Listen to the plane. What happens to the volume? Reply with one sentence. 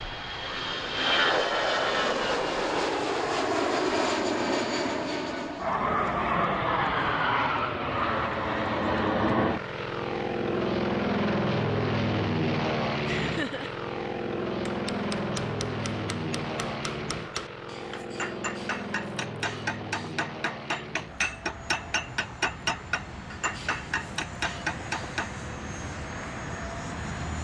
The loudness of the plane goes down.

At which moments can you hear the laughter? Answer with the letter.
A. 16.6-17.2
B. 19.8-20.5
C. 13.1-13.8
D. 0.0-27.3
C.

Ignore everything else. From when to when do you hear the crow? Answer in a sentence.
The crow can't be heard in this clip.